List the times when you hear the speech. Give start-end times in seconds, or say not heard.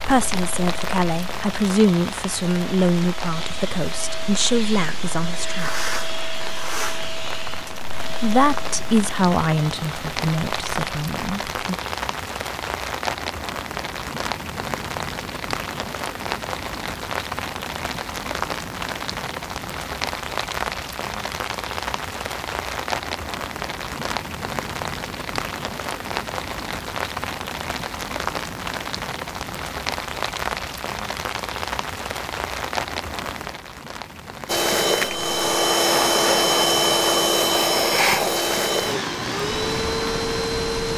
0.0-5.9, 8.2-11.8.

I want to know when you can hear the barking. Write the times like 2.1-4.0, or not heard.
not heard.